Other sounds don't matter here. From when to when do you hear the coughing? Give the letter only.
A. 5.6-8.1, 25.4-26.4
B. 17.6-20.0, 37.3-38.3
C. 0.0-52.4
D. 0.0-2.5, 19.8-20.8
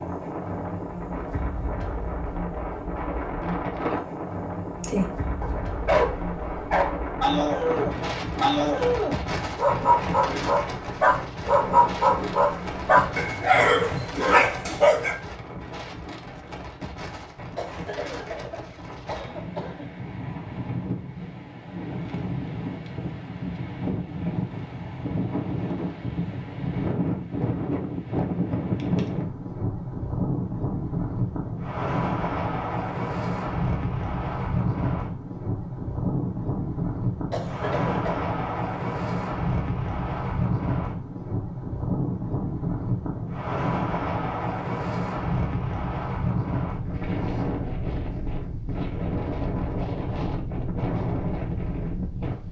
B.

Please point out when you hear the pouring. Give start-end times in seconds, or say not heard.
not heard.